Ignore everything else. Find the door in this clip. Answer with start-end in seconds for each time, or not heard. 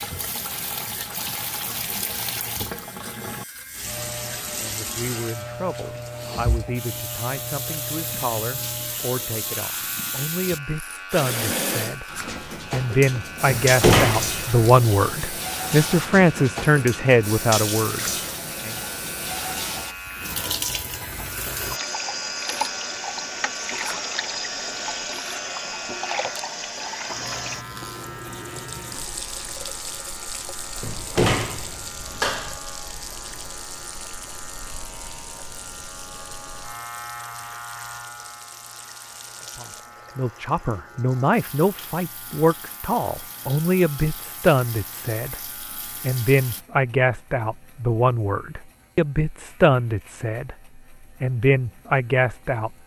13.6-14.5, 30.8-32.6.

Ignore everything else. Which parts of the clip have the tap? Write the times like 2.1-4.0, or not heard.
0.0-46.6.